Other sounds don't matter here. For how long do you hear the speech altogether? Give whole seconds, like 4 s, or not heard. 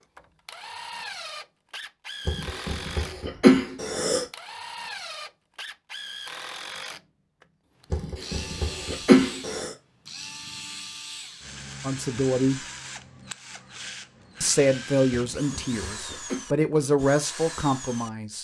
5 s.